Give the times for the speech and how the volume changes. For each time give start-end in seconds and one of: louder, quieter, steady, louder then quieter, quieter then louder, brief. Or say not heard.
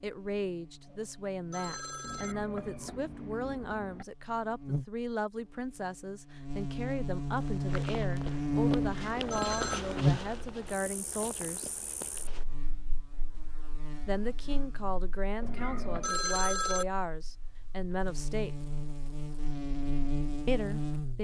0.0-11.7 steady
14.1-18.6 steady
20.4-21.1 brief.